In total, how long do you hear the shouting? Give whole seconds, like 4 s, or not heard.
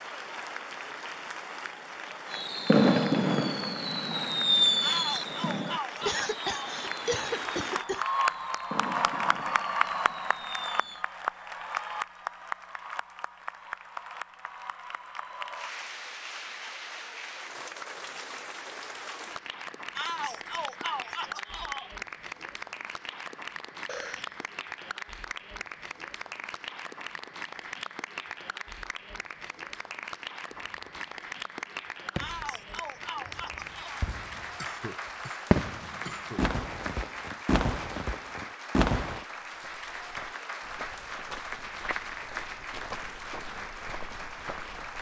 6 s.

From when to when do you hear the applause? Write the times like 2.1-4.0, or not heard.
0.0-44.9.